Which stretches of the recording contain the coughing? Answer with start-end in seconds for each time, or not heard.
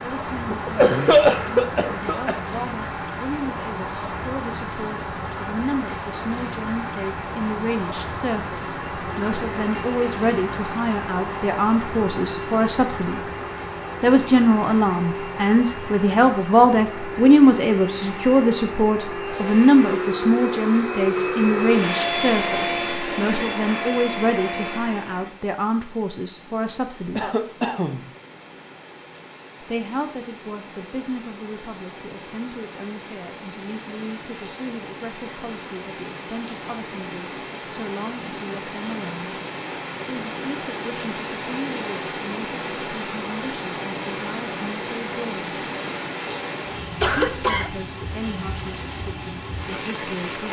0.5-2.4, 27.1-28.0, 47.0-47.7.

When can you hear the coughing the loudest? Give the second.
1 s.